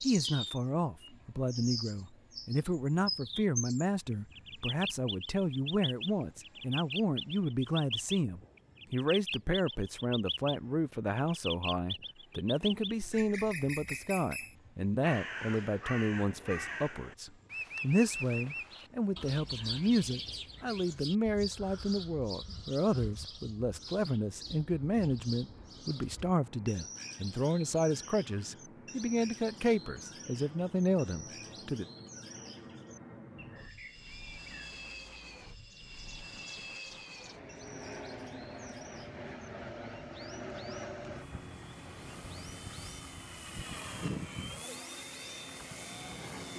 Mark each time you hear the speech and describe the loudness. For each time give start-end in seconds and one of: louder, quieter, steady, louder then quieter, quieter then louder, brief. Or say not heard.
0.0-31.9 steady.